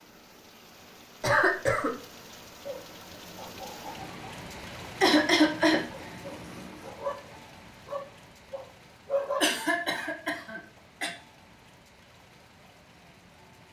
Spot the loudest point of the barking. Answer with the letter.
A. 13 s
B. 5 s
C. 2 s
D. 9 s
D.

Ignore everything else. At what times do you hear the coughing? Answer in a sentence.
The coughing can be heard from 1.2 to 1.9 s, from 5.0 to 6.0 s and from 9.4 to 11.1 s.